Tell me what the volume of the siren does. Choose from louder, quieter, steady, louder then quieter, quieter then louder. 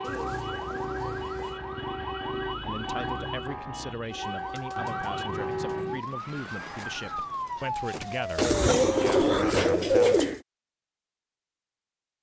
steady.